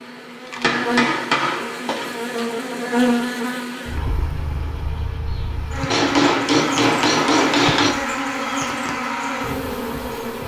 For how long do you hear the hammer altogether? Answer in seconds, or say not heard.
4 s.